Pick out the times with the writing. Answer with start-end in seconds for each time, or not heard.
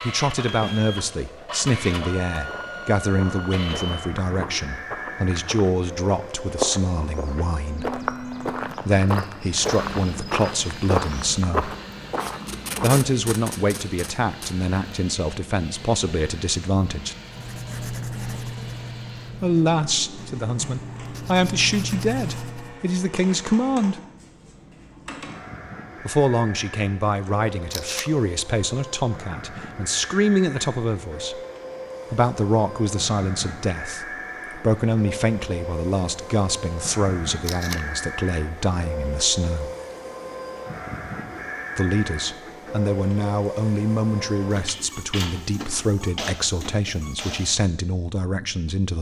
17.2-22.8.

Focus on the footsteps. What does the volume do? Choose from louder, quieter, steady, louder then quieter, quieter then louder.
louder.